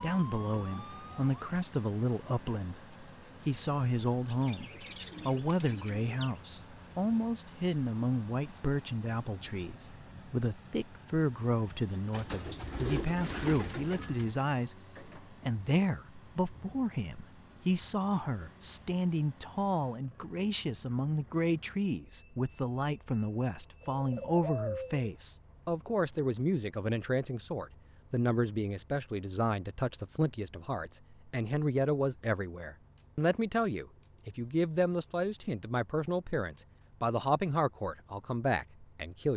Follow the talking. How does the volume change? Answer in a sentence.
The volume of the talking stays about the same.